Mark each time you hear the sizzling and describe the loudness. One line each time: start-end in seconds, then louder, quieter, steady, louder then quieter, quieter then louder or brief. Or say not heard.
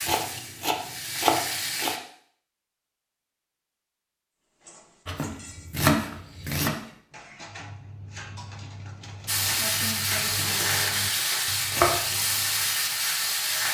0.0-2.0 brief
9.2-13.7 steady.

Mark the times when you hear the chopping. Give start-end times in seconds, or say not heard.
0.1-1.9, 5.0-6.8, 10.3-12.0.